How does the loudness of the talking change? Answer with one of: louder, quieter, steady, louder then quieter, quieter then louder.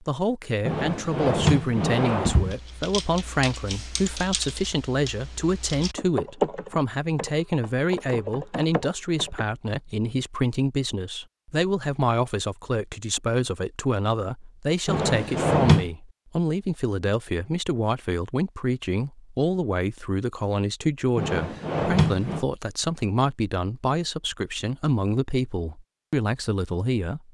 steady.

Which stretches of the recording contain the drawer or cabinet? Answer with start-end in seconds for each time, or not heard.
0.7-2.5, 14.8-15.8, 21.1-22.4.